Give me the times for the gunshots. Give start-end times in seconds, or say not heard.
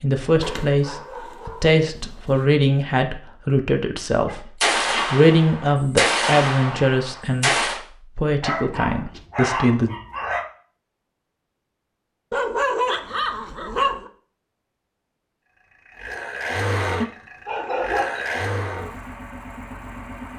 4.6-7.8.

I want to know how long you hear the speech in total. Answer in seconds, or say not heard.
10 s.